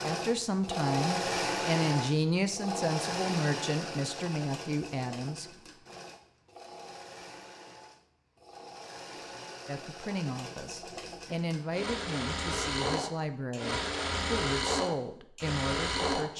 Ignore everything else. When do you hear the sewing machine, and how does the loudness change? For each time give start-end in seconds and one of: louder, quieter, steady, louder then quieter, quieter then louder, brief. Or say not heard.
0.0-16.3 quieter then louder.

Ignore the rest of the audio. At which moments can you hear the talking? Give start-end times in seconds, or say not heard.
0.0-5.5, 9.7-16.3.